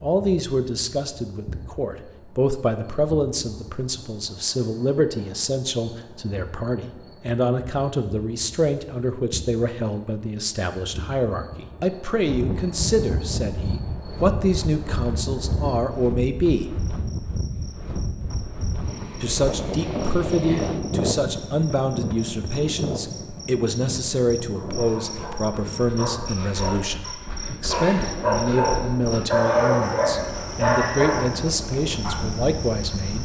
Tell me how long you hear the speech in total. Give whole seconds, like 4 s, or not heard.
31 s.